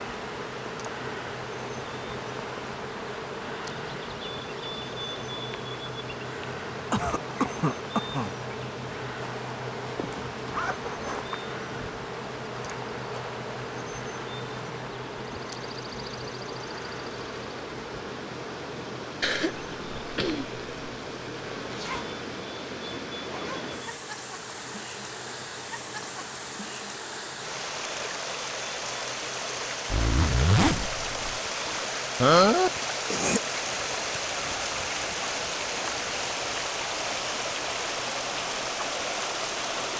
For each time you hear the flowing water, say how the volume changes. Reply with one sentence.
You can hear the flowing water from 0.0 to 39.9 s, getting louder.